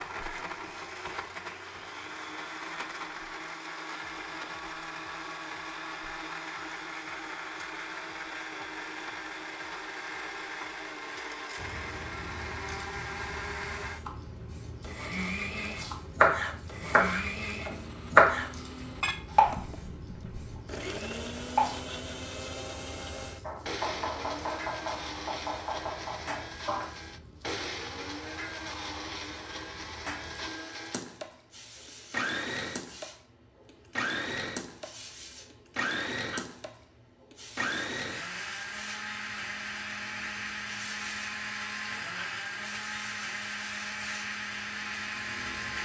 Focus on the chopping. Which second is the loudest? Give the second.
18 s.